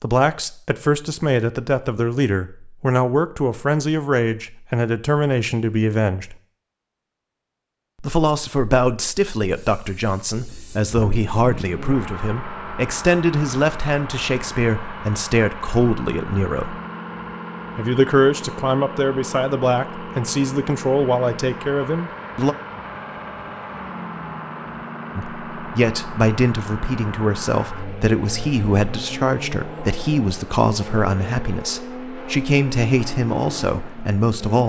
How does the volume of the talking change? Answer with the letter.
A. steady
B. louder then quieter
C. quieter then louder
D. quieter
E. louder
A.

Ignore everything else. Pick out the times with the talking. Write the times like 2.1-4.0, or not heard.
0.0-6.3, 8.0-16.8, 17.8-22.6, 25.1-34.6.